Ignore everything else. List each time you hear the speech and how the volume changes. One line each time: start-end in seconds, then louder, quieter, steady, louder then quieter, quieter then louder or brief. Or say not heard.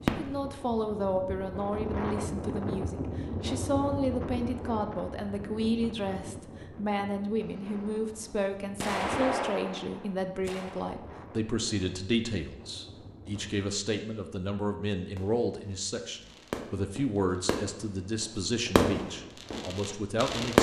0.1-20.5 steady.